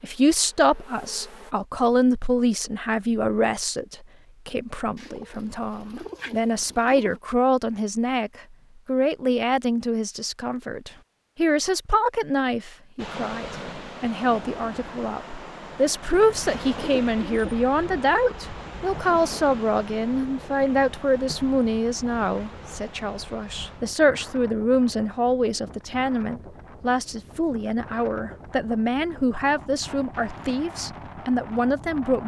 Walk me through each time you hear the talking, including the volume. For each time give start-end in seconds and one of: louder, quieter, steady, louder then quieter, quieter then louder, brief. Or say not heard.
0.0-32.2 steady.